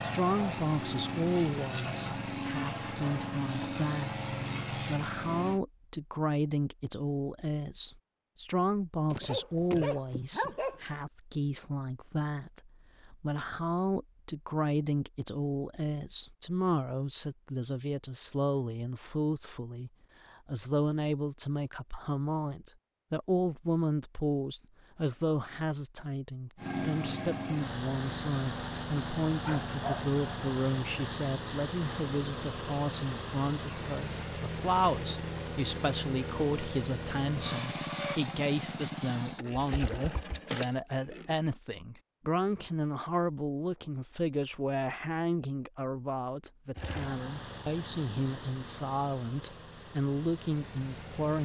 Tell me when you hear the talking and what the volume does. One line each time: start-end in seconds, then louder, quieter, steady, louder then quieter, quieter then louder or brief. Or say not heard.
0.0-51.4 steady.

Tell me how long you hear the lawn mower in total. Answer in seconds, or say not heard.
25 s.